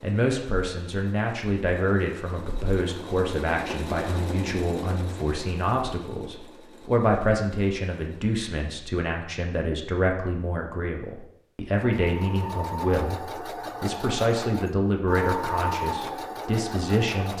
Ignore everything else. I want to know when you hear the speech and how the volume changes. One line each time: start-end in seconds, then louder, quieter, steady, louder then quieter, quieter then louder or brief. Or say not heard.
0.0-17.3 steady.